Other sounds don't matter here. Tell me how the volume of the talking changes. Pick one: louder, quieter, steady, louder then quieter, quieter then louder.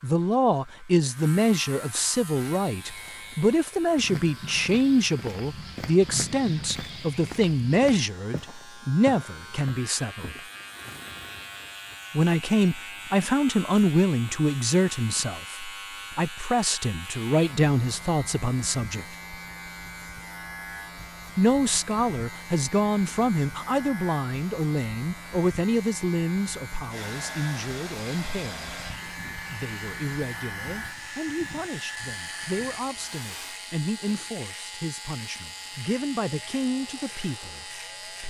quieter.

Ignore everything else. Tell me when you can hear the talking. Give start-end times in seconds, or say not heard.
0.0-10.4, 12.1-19.1, 21.4-38.2.